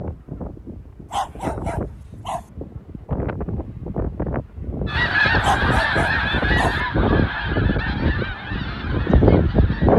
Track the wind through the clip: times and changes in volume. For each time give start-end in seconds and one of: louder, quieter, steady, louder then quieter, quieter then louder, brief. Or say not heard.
0.0-9.9 louder.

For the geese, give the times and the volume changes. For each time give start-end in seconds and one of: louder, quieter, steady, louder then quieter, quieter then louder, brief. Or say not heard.
4.8-9.9 quieter.